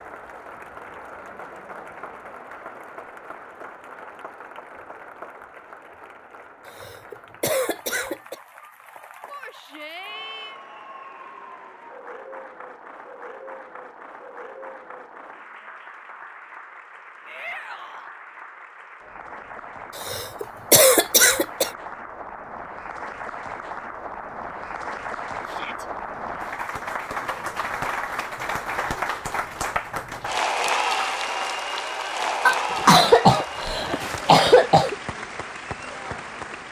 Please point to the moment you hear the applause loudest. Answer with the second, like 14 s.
31 s.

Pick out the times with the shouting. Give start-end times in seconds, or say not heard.
9.2-10.6, 17.2-18.1, 25.4-25.9.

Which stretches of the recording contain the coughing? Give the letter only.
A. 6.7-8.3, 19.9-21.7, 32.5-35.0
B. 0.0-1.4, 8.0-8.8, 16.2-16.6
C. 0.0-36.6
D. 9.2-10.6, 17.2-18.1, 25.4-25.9
A.